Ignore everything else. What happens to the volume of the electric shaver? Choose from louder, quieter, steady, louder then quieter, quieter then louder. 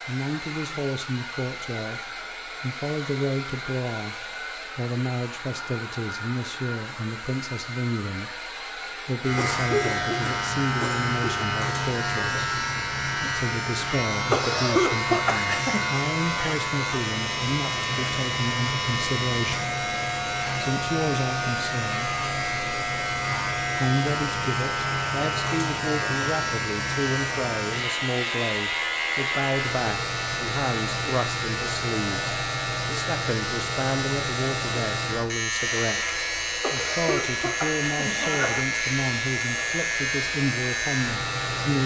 steady.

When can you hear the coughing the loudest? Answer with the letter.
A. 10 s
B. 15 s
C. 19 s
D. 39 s
B.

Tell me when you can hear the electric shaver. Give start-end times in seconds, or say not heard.
9.2-41.8.